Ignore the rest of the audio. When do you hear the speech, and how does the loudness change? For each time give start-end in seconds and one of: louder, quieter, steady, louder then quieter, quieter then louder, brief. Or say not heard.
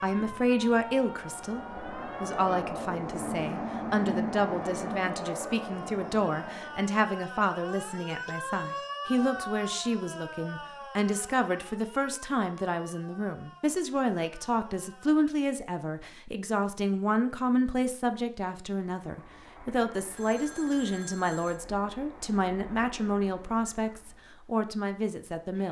0.0-25.6 steady.